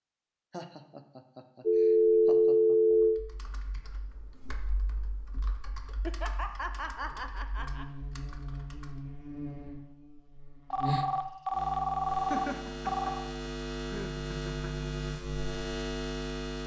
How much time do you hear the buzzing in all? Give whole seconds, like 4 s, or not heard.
9 s.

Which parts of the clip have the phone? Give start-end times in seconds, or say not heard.
1.6-3.2, 10.7-13.2.